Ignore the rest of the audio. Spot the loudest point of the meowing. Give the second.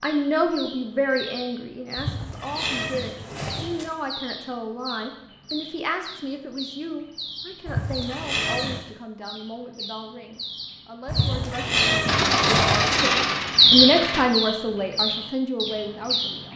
12 s.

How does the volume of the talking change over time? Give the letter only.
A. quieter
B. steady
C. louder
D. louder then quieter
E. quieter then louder
E.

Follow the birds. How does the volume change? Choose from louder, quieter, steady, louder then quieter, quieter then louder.
louder.